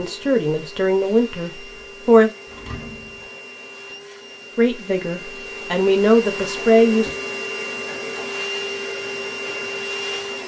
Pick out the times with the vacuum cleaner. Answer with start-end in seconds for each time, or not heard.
0.0-10.4.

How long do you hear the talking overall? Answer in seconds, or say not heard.
5 s.